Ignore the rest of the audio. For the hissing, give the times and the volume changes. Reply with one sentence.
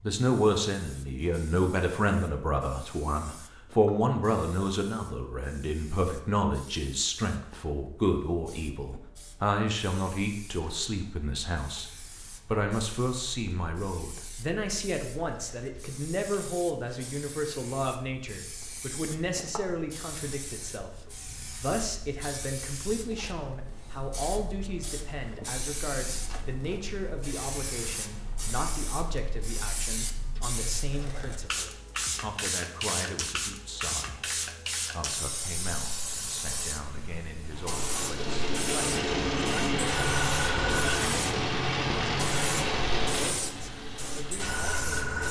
The hissing can be heard from 0.2 to 45.2 s, getting louder.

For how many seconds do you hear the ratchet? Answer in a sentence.
You can't hear the ratchet here.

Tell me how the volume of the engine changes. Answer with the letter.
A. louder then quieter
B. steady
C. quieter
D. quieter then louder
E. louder
C.